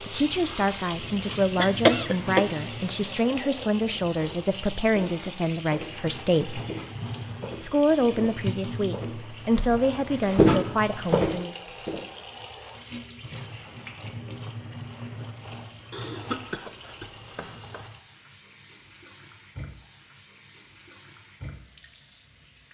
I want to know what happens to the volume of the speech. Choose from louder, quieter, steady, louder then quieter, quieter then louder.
steady.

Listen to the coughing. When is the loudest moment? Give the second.
2 s.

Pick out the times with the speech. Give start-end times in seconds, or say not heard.
0.0-6.6, 7.6-11.6.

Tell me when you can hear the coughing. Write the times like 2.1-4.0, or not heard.
1.6-2.5, 15.9-17.9.